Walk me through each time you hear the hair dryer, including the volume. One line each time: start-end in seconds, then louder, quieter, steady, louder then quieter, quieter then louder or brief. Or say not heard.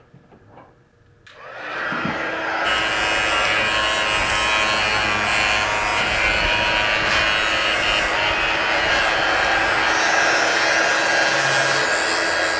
0.0-12.5 louder.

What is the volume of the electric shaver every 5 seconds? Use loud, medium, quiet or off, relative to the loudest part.
loud, loud, medium.